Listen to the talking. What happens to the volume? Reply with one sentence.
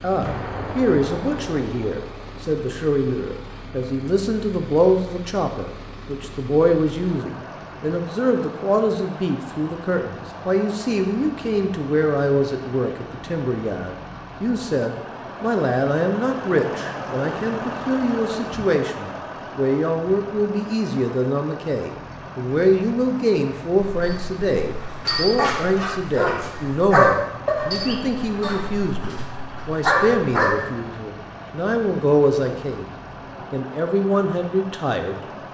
The loudness of the talking stays about the same.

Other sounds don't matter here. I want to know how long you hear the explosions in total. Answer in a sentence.
You can hear the explosions for 2 seconds altogether.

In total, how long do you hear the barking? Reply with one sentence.
The barking can be heard for 7 seconds in total.